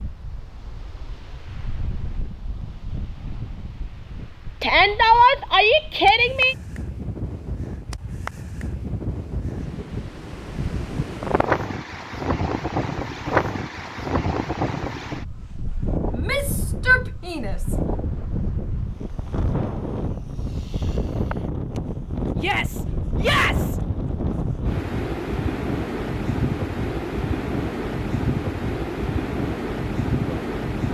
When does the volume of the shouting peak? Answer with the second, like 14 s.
5 s.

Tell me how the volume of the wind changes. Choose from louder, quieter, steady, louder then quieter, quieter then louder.
louder.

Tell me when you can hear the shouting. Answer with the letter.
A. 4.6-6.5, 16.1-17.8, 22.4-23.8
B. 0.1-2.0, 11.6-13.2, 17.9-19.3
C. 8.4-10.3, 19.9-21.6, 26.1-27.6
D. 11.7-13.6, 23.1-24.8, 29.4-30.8
A.